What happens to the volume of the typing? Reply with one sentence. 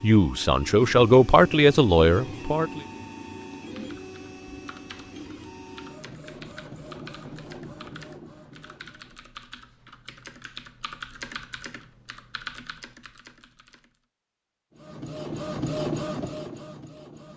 The volume of the typing goes up.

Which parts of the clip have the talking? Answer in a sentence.
The talking can be heard from 0.0 to 2.9 s.